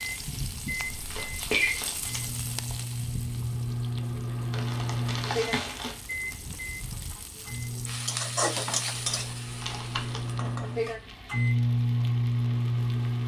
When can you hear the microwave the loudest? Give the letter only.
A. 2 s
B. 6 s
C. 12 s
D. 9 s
C.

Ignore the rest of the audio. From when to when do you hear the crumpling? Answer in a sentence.
You can hear the crumpling from 0.8 to 2.4 s, from 4.5 to 6.0 s and from 8.9 to 10.3 s.